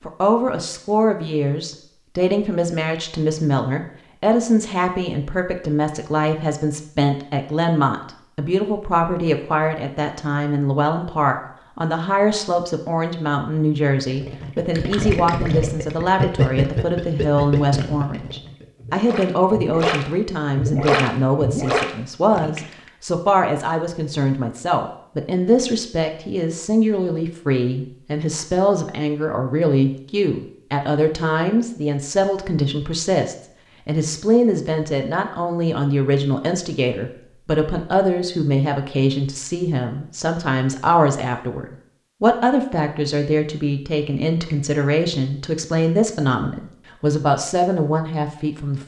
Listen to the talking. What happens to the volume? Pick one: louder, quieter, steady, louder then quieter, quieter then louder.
steady.